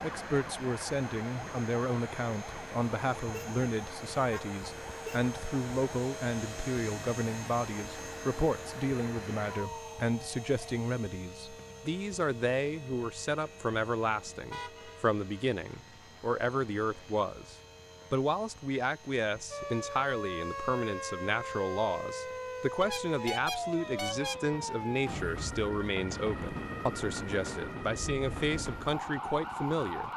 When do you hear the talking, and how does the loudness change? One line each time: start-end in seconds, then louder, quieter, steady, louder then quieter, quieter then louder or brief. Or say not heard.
0.0-30.1 steady.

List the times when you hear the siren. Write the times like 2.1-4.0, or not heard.
0.0-10.8, 19.5-30.1.